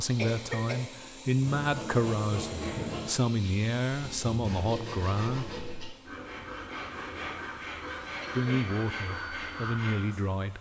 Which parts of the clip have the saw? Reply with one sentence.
The saw can be heard from 1.4 to 10.2 s.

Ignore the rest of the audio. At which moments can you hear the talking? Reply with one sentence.
You can hear the talking from 0.0 to 5.5 s and from 8.3 to 10.5 s.